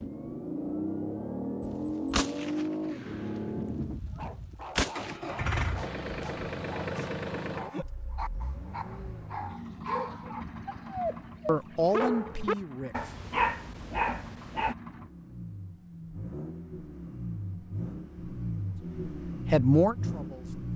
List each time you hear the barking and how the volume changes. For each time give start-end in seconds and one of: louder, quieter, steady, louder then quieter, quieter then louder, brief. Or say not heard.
4.1-14.8 louder.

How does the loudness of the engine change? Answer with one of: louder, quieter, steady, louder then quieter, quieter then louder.
quieter then louder.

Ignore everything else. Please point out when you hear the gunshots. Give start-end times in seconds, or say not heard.
1.6-5.2.